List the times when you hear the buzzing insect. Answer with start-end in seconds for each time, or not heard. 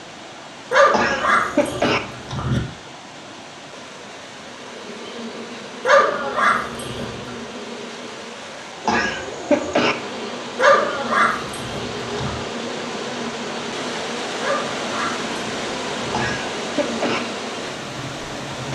4.4-8.3, 9.9-18.7.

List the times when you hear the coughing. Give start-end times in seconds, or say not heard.
0.9-2.0, 8.8-9.9, 16.1-17.2.